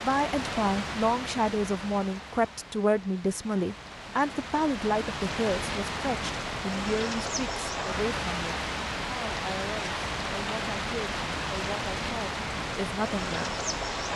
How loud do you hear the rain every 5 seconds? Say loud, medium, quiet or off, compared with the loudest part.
medium, loud, loud.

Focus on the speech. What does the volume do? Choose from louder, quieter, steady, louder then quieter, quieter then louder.
quieter.